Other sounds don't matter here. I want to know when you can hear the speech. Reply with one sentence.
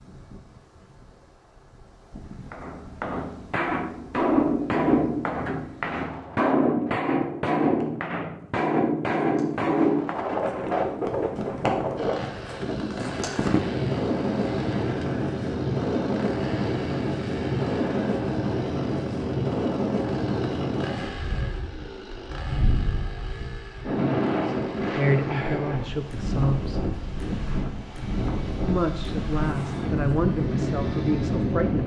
The speech can be heard from 24.3 to 26.9 s and from 28.6 to 31.8 s.